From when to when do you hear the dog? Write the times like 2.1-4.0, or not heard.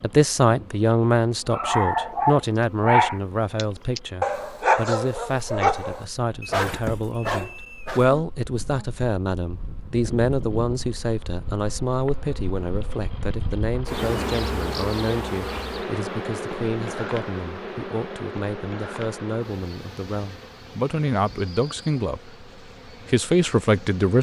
1.5-8.1.